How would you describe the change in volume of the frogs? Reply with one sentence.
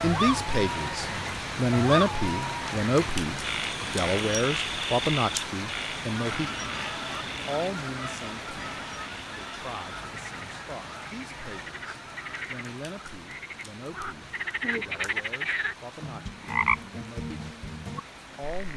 The volume of the frogs goes down, then up.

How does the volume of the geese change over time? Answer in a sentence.
The volume of the geese goes down.